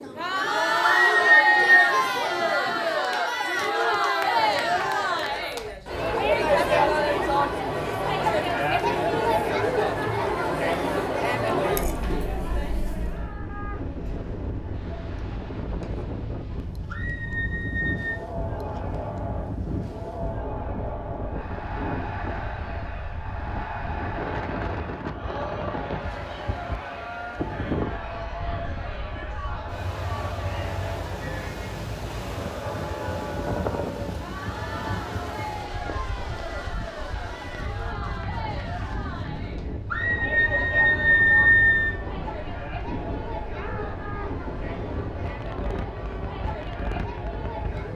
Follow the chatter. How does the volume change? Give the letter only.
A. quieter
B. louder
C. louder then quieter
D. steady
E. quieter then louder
A.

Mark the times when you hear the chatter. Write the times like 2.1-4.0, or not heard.
0.0-47.9.